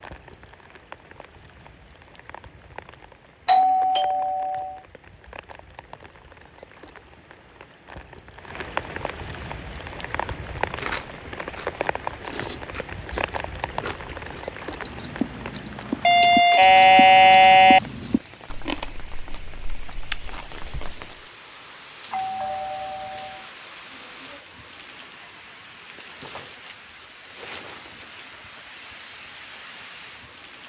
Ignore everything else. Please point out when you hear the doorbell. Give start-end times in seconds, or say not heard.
3.5-4.8, 16.1-17.8, 22.1-23.4.